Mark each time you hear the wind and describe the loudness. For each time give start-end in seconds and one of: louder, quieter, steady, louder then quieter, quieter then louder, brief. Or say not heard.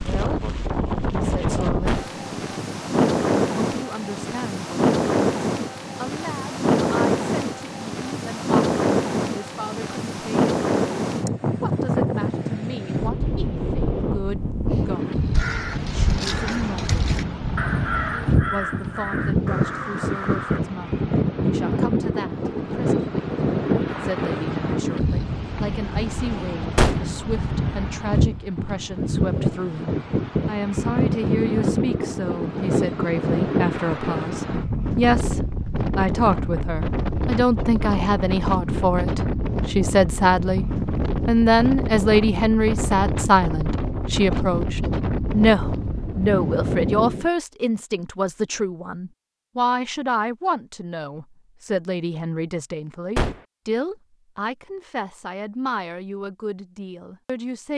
0.0-47.3 steady.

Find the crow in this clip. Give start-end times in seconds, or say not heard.
15.3-20.6.